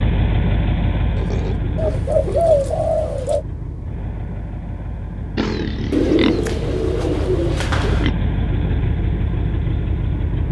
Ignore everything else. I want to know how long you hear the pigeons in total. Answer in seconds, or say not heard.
4 s.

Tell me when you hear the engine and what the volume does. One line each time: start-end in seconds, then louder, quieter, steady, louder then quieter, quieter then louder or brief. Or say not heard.
0.0-10.4 quieter then louder.